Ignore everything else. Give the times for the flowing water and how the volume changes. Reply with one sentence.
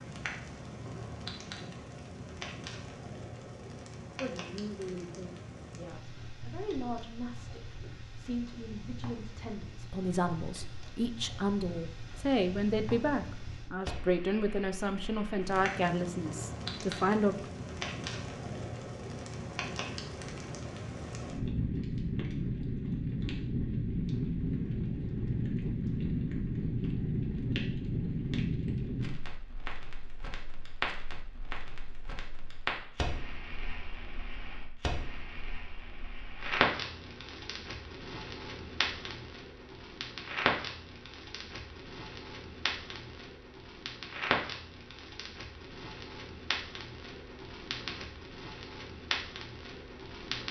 The flowing water can't be heard in this clip.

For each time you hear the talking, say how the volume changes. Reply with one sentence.
The talking can be heard from 4.2 to 17.5 s, getting louder.